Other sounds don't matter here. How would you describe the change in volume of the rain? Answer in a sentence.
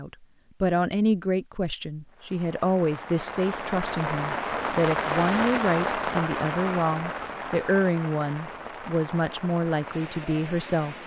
The loudness of the rain goes up, then down.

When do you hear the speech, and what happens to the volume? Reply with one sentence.
You can hear the speech from 0.0 to 11.0 s, at a steady volume.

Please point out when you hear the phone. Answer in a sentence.
The phone can't be heard in this clip.